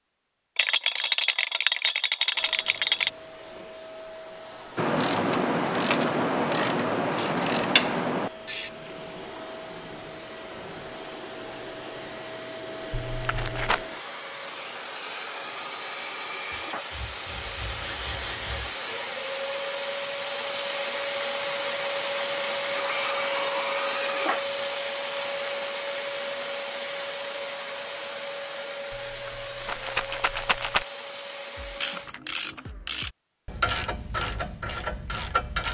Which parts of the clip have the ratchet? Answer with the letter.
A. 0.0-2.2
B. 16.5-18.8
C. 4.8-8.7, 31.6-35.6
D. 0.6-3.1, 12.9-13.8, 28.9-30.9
C.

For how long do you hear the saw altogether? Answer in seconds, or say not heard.
2 s.